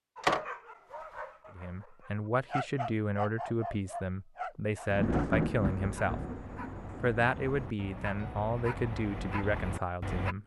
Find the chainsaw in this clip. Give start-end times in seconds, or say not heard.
not heard.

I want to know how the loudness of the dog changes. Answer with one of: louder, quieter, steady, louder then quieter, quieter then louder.
quieter then louder.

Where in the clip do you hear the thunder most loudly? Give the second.
5 s.